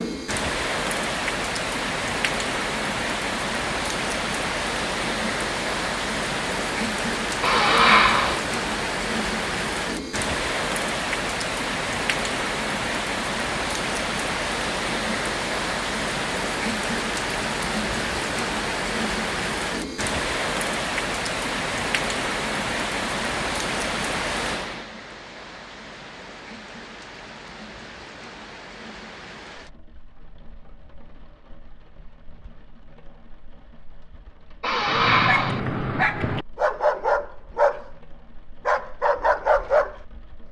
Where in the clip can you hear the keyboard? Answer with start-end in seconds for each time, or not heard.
not heard.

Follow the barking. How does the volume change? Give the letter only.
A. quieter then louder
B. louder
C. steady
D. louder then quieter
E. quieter
C.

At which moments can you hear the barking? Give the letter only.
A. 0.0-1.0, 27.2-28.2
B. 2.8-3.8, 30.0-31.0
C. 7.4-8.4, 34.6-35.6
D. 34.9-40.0
D.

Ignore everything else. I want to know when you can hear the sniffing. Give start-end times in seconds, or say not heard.
7.4-8.4, 34.6-35.6.